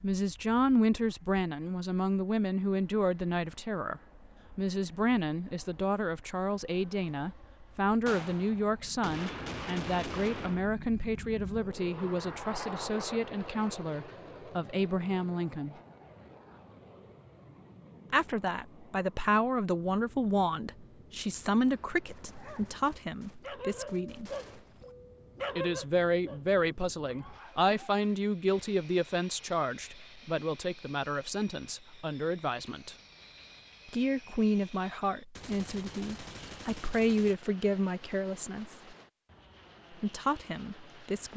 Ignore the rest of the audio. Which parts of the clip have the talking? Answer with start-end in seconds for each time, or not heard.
0.0-15.8, 18.1-24.3, 25.6-33.0, 33.9-38.7, 39.9-41.3.